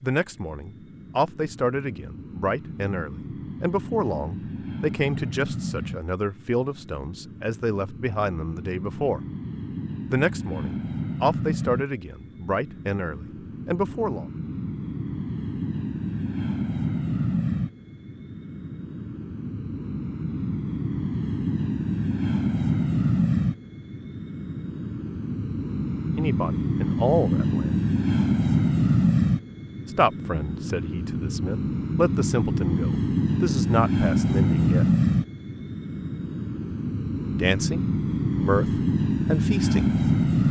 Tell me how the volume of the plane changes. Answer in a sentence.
The loudness of the plane goes up.